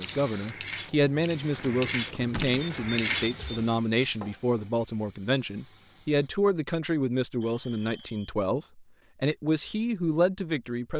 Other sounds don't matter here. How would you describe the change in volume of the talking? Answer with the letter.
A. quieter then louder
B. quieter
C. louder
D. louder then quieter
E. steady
E.